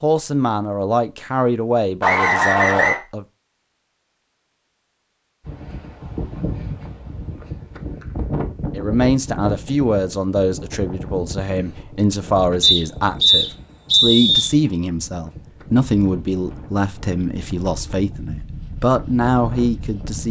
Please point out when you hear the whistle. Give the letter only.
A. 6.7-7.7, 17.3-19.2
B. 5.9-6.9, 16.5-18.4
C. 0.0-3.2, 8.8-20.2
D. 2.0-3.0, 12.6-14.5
D.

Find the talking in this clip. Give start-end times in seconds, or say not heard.
0.0-3.2, 8.8-20.2.